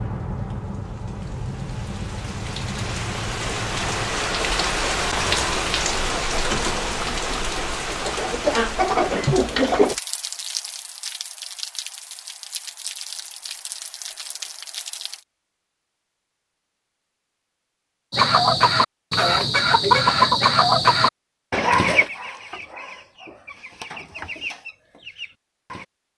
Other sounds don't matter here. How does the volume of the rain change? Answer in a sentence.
The volume of the rain goes up, then down.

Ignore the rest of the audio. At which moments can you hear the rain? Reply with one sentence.
You can hear the rain from 0.0 to 15.2 s.